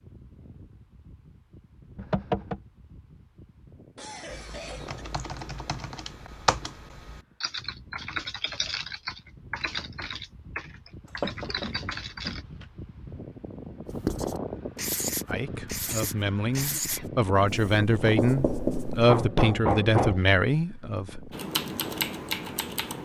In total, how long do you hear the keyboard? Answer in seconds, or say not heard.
10 s.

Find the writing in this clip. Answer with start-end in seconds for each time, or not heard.
13.8-19.1.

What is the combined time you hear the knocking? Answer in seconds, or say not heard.
3 s.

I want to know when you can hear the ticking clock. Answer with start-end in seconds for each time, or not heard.
not heard.